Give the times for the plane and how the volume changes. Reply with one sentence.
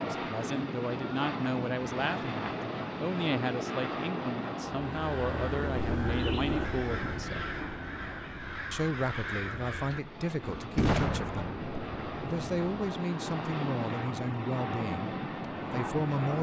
The plane can be heard from 0.0 to 16.3 s, getting quieter then louder.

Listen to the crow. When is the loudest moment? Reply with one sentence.
The loudest moment of the crow is at 6 seconds.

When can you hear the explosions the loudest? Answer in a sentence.
The volume of the explosions peaks at 11 seconds.